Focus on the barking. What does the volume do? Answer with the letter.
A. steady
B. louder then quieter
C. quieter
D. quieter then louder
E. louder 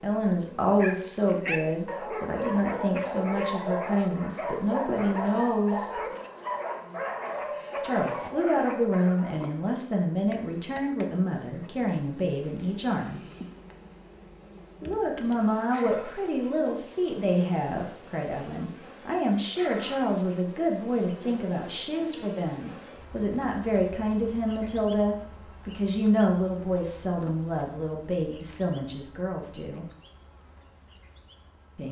A.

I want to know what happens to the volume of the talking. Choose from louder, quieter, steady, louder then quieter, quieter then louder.
steady.